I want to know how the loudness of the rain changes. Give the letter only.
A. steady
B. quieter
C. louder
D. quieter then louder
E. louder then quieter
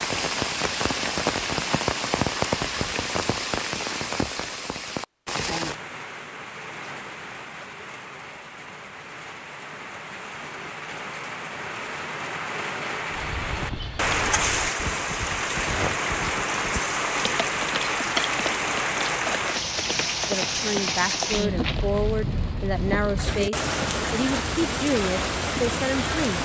D.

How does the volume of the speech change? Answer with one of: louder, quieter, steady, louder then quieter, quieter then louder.
steady.